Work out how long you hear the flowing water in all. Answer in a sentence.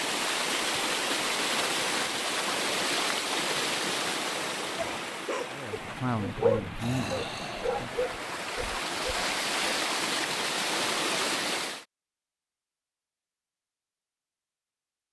You can hear the flowing water for 12 seconds altogether.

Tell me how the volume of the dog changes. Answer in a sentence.
The volume of the dog goes up, then down.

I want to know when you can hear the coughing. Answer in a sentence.
The coughing can't be heard in this clip.